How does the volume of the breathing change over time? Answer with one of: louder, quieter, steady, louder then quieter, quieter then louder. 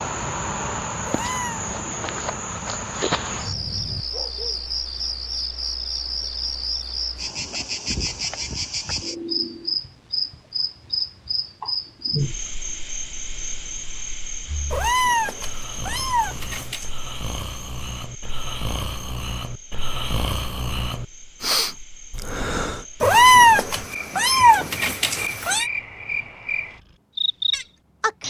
louder.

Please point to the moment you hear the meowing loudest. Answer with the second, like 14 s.
23 s.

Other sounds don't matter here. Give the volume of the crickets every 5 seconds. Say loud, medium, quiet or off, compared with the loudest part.
loud, loud, loud, quiet, quiet, loud.